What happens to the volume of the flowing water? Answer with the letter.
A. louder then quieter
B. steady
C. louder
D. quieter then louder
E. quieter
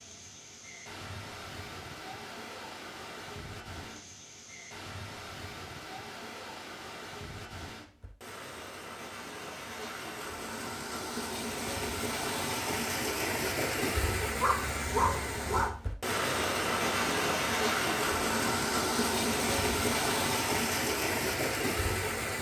C.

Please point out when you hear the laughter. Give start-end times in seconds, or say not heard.
not heard.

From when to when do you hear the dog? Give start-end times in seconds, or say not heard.
14.2-15.8.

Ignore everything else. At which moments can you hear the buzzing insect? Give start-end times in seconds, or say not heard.
not heard.